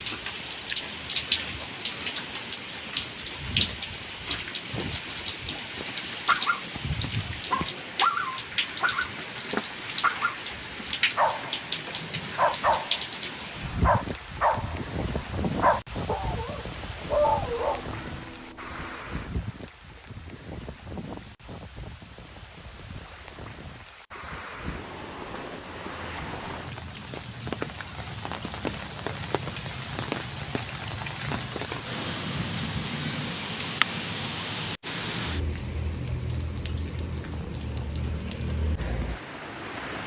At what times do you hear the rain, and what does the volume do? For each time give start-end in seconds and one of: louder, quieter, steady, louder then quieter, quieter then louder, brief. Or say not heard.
0.0-40.0 quieter then louder.